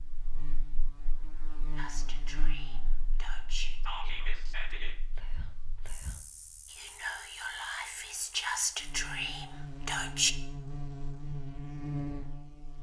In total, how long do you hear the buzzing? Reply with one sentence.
The buzzing can be heard for 13 seconds in total.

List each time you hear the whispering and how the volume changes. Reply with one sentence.
You can hear the whispering from 1.8 to 10.3 s, getting quieter then louder.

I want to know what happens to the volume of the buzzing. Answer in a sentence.
The volume of the buzzing goes down, then up.